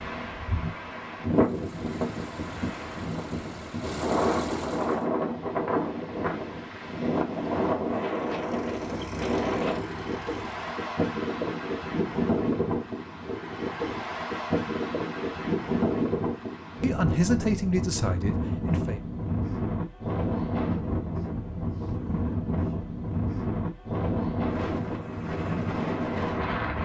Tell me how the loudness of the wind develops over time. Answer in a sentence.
The volume of the wind stays about the same.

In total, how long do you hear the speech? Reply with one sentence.
You can hear the speech for 2 seconds altogether.